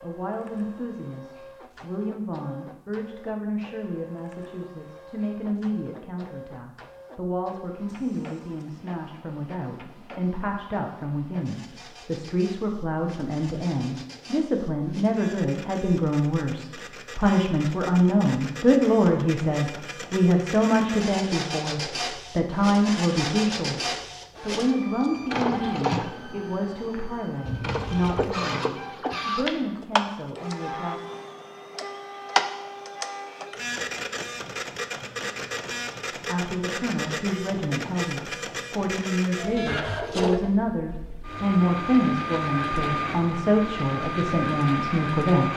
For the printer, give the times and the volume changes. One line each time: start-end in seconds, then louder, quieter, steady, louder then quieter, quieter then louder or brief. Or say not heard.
0.0-45.5 louder.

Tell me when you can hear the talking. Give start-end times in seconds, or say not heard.
0.0-31.0, 36.2-45.5.